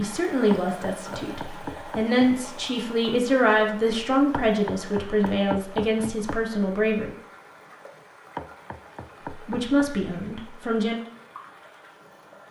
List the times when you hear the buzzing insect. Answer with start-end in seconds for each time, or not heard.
not heard.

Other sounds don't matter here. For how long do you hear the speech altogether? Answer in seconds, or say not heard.
9 s.